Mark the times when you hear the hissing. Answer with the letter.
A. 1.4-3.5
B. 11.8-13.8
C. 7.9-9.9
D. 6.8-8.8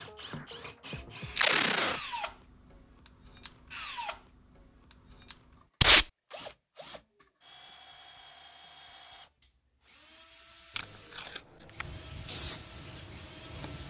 B.